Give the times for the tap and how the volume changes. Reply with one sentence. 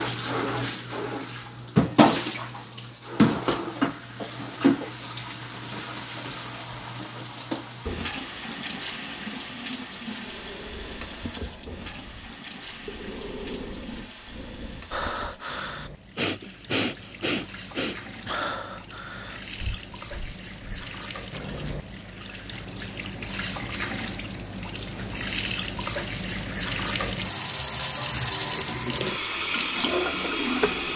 The tap can be heard from 0.0 to 30.9 s, getting quieter then louder.